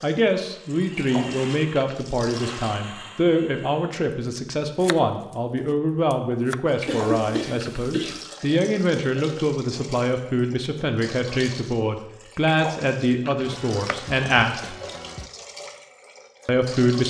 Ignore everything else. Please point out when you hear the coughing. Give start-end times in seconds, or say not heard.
6.8-8.2.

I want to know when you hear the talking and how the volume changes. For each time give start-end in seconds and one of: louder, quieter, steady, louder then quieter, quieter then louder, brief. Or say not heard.
0.0-14.8 steady
16.4-17.0 brief.